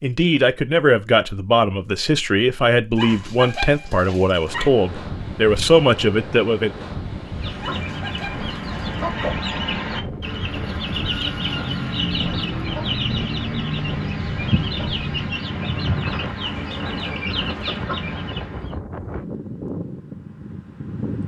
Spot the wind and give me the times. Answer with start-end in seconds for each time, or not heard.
4.5-21.2.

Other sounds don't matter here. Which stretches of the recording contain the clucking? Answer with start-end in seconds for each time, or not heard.
7.2-18.8.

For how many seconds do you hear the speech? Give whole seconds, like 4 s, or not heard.
7 s.